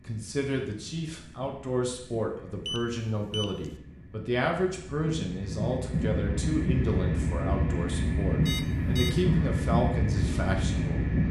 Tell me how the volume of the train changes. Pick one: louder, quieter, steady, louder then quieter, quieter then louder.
louder.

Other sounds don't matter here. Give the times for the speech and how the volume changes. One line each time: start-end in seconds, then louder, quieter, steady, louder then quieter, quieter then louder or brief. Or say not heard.
0.1-11.2 steady.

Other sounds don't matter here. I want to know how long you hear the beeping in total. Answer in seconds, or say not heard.
2 s.